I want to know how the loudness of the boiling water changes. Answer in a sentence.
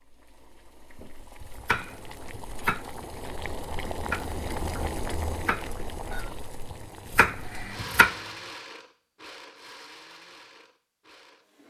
The volume of the boiling water goes up, then down.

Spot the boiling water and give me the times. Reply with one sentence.
You can hear the boiling water from 0.0 to 7.8 s.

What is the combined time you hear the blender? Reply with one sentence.
You can hear the blender for 4 seconds altogether.